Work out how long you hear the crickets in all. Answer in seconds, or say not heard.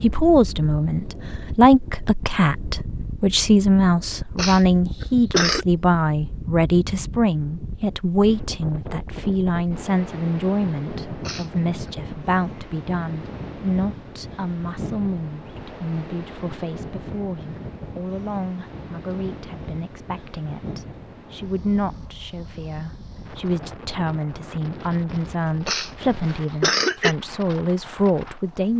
not heard.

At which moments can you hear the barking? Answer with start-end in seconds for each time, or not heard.
not heard.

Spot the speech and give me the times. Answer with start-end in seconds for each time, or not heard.
0.0-28.7.